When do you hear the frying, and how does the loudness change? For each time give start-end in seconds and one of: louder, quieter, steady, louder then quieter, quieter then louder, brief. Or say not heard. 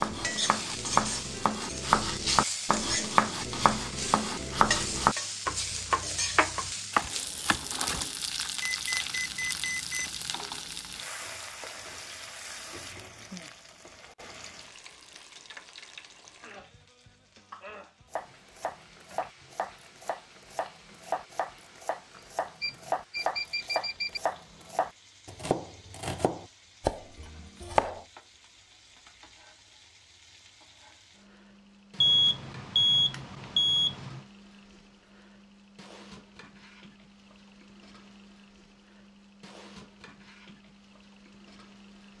0.0-42.1 quieter.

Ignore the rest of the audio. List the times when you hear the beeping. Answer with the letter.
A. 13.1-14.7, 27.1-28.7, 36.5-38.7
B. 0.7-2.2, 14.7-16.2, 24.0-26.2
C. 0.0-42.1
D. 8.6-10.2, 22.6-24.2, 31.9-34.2
D.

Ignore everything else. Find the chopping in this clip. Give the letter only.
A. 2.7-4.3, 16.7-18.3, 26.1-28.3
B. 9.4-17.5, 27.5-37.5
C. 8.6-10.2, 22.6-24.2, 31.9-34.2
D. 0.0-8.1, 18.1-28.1
D.